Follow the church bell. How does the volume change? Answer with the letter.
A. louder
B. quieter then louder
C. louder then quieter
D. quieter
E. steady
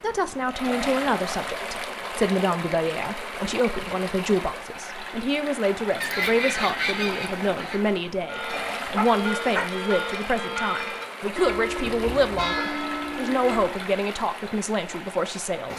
E.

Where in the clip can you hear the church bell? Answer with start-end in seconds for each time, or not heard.
8.2-13.8.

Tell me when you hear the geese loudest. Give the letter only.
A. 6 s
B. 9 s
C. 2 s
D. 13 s
A.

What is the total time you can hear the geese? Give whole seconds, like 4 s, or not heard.
2 s.